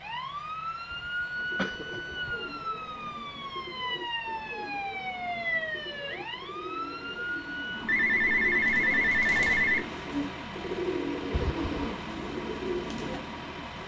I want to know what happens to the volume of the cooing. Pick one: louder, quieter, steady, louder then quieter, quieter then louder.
louder.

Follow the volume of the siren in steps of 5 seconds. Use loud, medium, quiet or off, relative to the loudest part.
loud, loud, medium.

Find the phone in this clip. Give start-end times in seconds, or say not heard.
7.8-9.8.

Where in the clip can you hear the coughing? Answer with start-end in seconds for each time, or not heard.
0.9-2.4, 11.3-12.0.